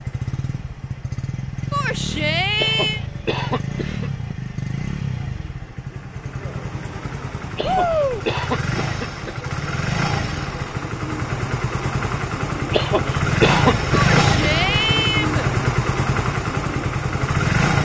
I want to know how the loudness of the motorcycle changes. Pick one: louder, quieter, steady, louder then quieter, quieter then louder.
louder.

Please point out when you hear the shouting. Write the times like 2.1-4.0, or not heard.
1.7-3.0, 7.6-8.2, 13.9-15.4.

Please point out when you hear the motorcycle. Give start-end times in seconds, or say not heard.
0.0-17.7.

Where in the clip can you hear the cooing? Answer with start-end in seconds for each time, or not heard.
not heard.